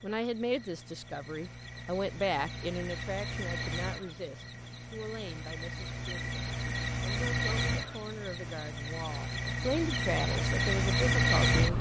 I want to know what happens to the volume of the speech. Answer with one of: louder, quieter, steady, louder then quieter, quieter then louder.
quieter then louder.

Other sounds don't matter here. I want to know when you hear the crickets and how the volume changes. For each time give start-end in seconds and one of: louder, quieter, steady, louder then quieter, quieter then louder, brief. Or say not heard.
0.0-11.7 louder.